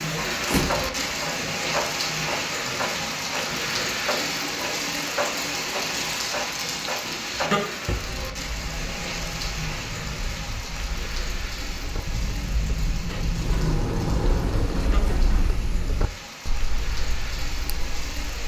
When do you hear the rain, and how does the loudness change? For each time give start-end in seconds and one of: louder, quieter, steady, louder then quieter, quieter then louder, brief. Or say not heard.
0.0-18.4 quieter.